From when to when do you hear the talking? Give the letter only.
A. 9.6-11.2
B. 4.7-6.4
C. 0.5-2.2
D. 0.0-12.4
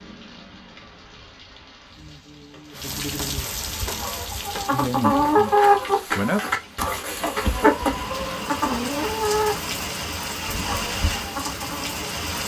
B.